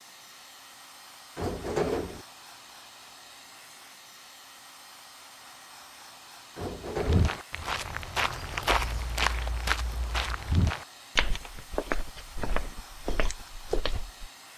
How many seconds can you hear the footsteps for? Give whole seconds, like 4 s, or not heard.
7 s.